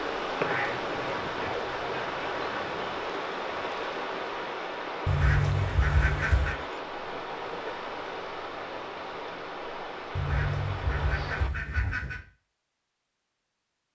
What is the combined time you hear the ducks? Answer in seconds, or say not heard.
6 s.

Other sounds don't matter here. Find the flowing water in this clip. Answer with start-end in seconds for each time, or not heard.
0.0-11.5.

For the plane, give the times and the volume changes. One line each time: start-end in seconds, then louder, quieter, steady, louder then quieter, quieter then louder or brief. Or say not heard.
not heard.